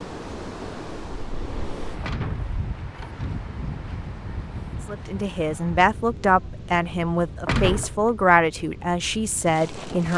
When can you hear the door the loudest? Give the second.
8 s.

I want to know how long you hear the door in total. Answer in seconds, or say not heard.
2 s.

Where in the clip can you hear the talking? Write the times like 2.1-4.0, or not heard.
4.8-10.1.